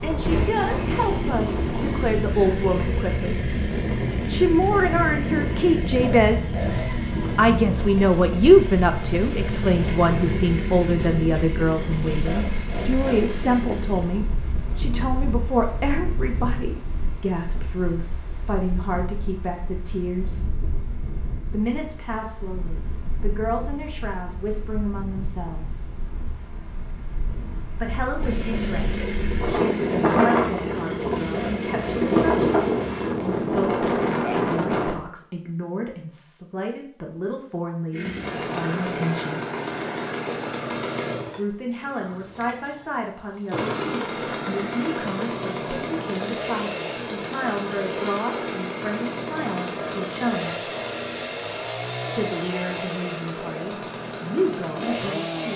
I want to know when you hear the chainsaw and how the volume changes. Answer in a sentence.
The chainsaw can be heard from 0.0 to 14.1 s, at a steady volume; from 28.1 to 33.1 s, at a steady volume; and from 37.9 to 55.5 s, at a steady volume.